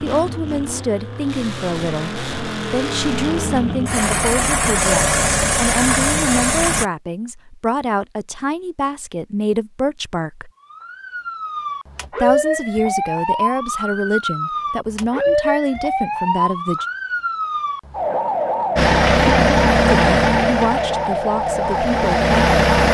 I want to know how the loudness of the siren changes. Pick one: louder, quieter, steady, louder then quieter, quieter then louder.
steady.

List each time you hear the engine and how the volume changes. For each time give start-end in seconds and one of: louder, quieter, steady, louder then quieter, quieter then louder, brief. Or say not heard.
0.0-6.8 louder
18.8-22.8 quieter then louder.